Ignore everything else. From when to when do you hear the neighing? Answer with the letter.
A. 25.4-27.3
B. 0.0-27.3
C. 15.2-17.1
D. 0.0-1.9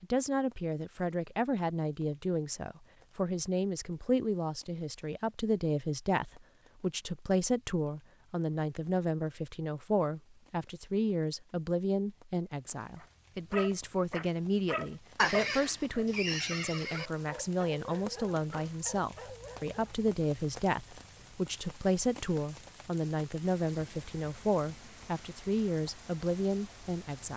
C.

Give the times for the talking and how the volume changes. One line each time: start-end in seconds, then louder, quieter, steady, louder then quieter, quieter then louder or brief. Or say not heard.
0.0-27.3 steady.